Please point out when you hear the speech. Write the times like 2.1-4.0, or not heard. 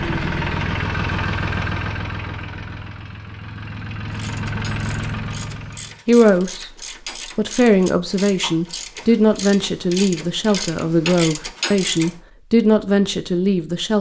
6.0-6.7, 7.3-13.9.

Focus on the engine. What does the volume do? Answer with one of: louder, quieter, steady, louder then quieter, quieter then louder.
quieter then louder.